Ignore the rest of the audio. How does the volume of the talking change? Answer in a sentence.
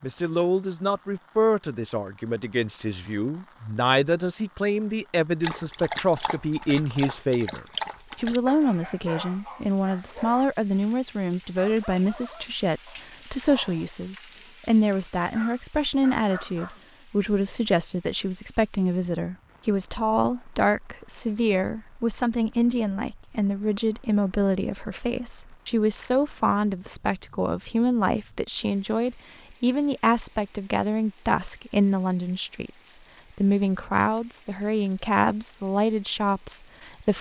The volume of the talking stays about the same.